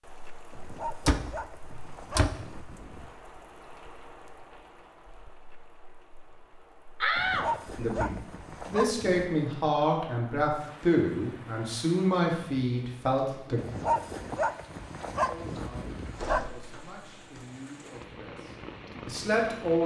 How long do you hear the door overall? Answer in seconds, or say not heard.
4 s.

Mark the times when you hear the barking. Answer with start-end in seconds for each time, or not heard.
0.5-3.3, 7.2-9.3, 13.6-16.4.